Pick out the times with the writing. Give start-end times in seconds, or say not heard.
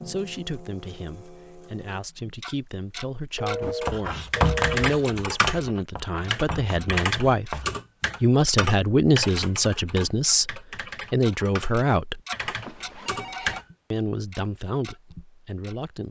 3.6-7.8.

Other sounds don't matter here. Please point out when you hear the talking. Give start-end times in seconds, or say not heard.
0.1-7.6, 8.2-12.2, 13.9-16.0.